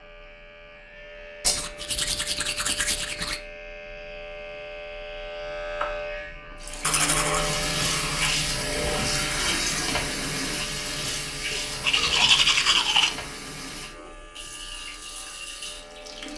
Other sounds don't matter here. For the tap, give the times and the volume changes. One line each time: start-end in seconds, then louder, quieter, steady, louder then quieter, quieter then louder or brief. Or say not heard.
6.6-16.3 quieter.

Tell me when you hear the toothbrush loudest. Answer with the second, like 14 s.
12 s.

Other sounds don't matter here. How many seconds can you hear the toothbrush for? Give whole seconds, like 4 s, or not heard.
5 s.